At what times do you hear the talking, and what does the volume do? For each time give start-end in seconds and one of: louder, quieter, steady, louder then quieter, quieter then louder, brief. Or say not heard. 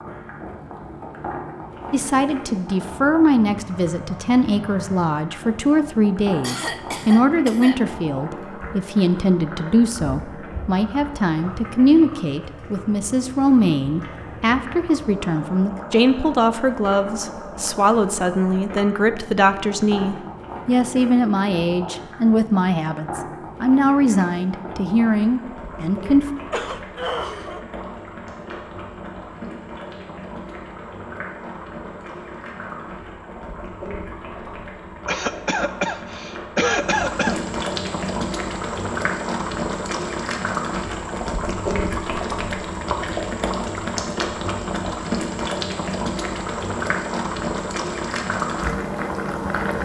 1.9-26.2 steady.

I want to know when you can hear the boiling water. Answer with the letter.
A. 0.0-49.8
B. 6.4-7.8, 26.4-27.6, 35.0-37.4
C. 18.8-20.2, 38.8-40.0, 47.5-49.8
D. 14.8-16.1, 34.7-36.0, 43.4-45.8
A.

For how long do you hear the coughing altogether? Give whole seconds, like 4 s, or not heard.
5 s.